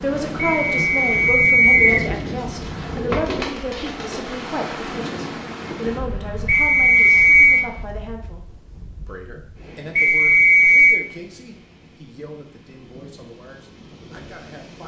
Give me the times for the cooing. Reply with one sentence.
The cooing can be heard from 1.7 to 4.2 s.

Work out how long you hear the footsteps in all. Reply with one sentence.
The footsteps can't be heard in this clip.